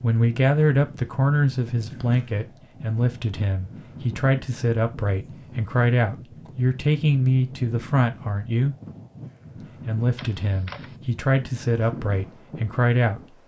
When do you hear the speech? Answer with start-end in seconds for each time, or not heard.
0.0-8.8, 9.8-13.3.